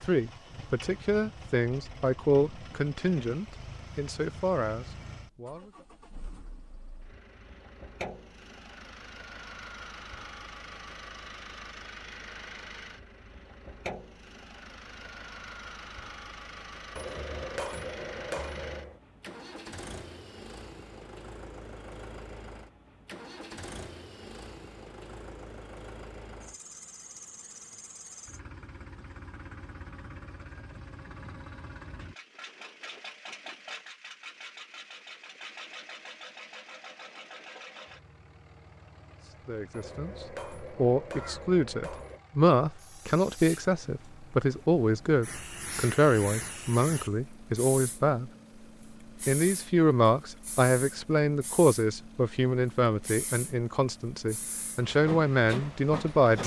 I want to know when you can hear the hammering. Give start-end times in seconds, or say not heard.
16.9-19.0, 39.7-42.2.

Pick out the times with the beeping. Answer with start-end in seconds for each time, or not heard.
not heard.